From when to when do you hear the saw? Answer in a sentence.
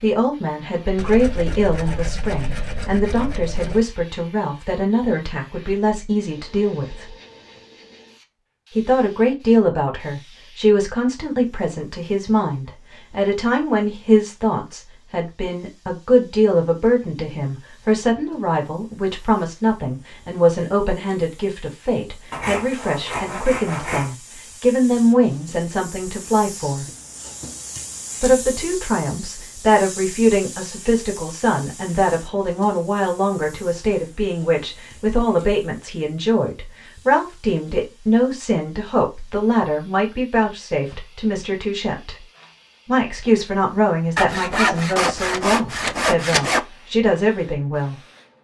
The saw can be heard from 0.9 to 3.9 s, from 22.3 to 24.1 s and from 44.1 to 46.6 s.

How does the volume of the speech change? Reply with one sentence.
The loudness of the speech stays about the same.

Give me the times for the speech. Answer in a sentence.
The speech can be heard from 0.0 to 7.1 s, from 8.7 to 26.9 s, from 28.2 to 42.2 s and from 42.9 to 48.0 s.